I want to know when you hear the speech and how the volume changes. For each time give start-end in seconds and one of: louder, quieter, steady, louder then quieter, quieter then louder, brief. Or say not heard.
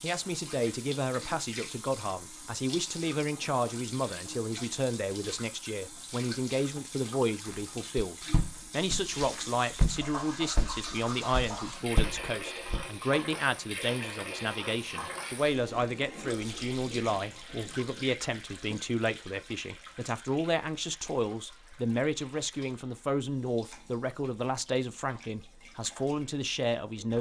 0.0-27.1 steady.